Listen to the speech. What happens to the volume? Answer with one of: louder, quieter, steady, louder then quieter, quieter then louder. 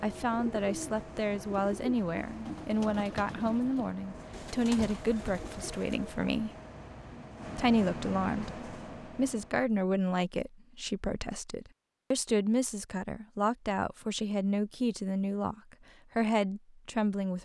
steady.